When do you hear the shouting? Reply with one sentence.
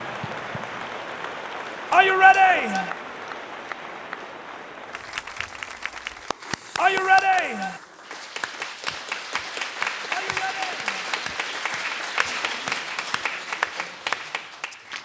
You can hear the shouting from 1.9 to 2.9 s, from 6.8 to 7.8 s and from 10.1 to 11.1 s.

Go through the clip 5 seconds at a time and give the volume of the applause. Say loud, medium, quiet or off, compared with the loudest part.
medium, loud, loud.